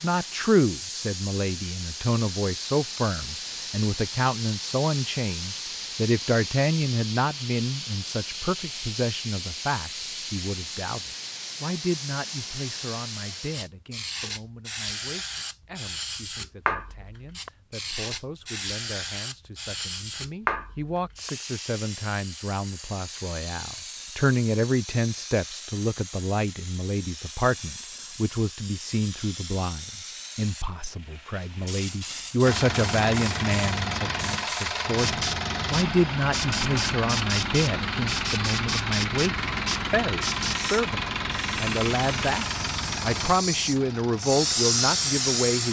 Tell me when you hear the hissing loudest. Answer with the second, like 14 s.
45 s.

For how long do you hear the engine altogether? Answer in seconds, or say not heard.
13 s.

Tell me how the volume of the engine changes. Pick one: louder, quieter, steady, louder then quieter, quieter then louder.
quieter.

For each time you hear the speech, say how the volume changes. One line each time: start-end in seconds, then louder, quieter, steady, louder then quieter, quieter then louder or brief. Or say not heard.
0.0-45.6 quieter then louder.